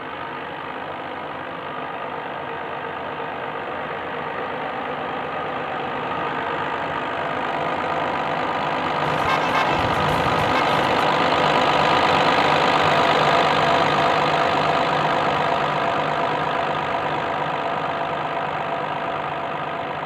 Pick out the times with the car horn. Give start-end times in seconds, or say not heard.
9.1-11.0.